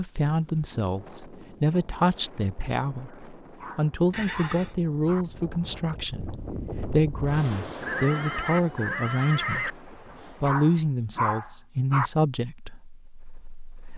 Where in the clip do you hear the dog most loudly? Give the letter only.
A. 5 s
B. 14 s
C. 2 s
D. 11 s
D.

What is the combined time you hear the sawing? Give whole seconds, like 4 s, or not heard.
not heard.